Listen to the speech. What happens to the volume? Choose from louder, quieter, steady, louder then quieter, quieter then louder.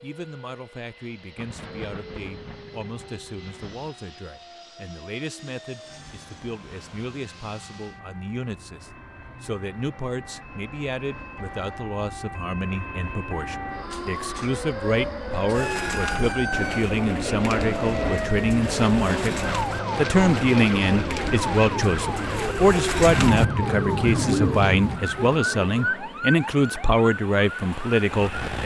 louder.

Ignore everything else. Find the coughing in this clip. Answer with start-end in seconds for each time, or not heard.
not heard.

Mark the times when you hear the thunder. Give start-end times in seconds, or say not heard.
1.4-4.0, 23.1-25.0.